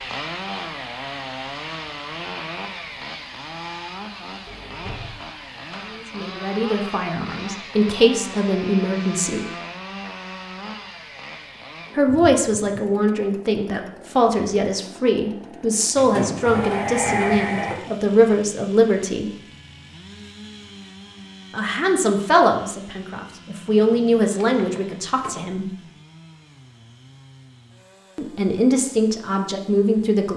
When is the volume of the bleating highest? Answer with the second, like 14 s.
17 s.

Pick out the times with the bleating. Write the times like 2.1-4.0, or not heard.
15.9-17.8.